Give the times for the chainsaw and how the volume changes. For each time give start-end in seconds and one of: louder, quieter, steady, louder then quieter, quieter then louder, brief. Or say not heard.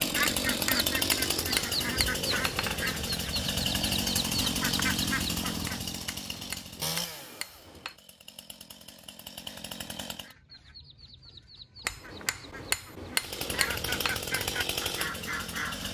0.0-10.3 quieter
13.2-15.8 brief.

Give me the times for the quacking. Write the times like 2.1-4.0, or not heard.
0.0-6.0, 10.1-15.8.